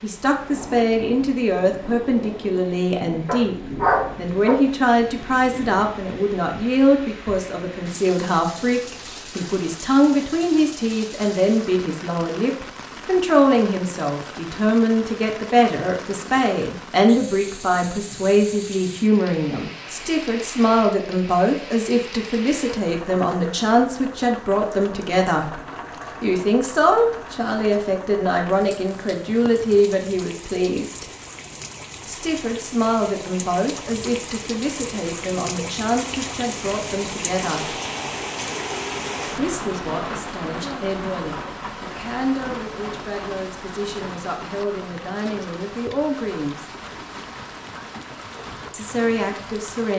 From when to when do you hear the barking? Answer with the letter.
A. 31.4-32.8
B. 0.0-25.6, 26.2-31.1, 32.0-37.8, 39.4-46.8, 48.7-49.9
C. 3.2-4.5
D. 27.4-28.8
C.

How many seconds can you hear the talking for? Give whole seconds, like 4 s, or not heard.
45 s.